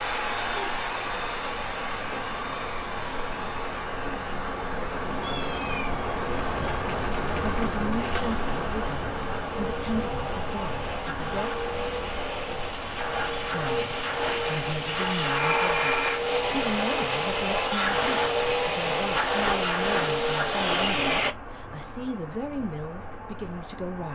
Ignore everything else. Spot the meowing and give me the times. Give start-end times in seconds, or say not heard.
4.8-6.8.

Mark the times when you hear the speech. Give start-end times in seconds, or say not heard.
7.5-11.5, 13.4-24.1.